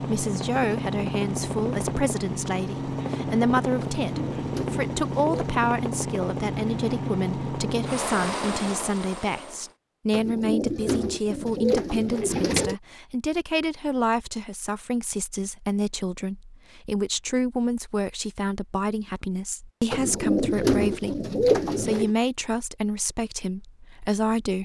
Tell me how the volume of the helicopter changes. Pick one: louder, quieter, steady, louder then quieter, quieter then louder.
steady.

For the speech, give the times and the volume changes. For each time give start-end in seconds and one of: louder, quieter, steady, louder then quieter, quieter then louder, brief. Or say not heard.
0.0-24.6 steady.